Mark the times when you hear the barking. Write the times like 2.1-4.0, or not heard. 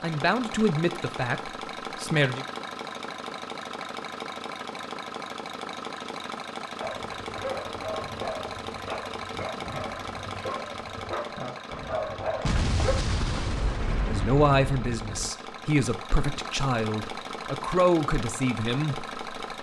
6.8-12.9.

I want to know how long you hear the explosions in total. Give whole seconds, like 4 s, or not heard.
3 s.